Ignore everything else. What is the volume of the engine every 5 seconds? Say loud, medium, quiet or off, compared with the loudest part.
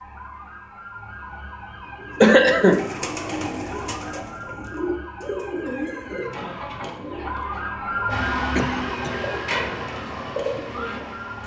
off, loud, medium.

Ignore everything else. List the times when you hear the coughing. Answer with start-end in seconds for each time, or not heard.
2.2-2.9, 8.6-9.3.